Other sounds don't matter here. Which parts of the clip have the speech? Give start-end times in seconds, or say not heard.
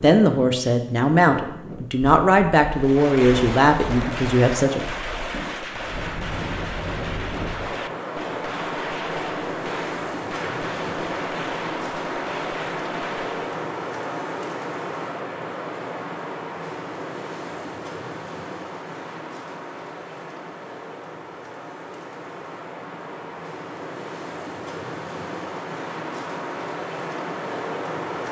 0.0-4.8.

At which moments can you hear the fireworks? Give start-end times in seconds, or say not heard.
2.7-13.5.